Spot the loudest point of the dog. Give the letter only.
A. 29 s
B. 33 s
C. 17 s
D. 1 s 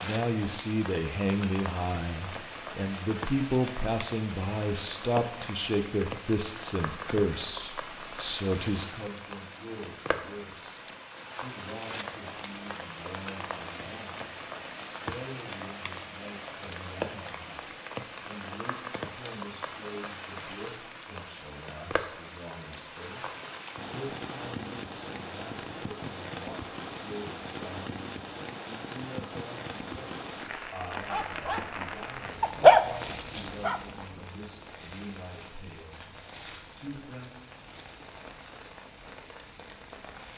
B.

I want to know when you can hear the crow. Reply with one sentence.
The crow can't be heard in this clip.